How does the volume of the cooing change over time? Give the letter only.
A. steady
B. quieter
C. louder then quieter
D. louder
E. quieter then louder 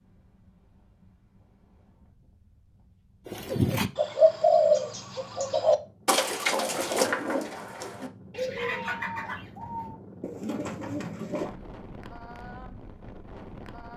B.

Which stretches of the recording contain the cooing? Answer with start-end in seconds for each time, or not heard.
3.2-11.6.